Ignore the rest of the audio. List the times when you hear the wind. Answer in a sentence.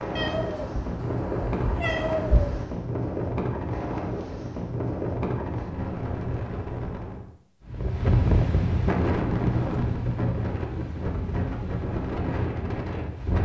The wind can be heard from 0.0 to 13.4 s.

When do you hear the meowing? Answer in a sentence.
The meowing can be heard from 0.1 to 2.6 s.